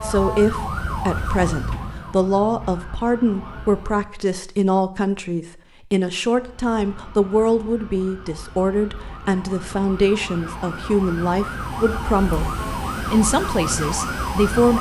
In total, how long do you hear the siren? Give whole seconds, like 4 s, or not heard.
13 s.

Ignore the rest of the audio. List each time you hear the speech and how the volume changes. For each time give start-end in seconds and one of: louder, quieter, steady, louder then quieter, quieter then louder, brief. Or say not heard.
0.0-14.7 steady.